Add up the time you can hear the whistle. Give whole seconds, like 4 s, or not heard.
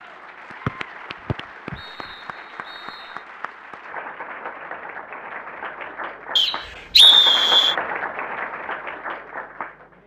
4 s.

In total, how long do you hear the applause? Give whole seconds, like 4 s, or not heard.
10 s.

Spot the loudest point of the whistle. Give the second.
7 s.